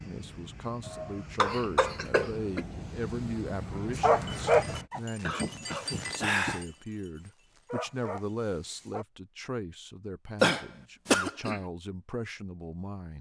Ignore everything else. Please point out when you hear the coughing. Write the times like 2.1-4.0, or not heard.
0.8-2.6, 5.2-6.7, 10.4-11.6.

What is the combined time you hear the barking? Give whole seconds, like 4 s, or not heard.
5 s.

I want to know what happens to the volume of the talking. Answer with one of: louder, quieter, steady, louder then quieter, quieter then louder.
steady.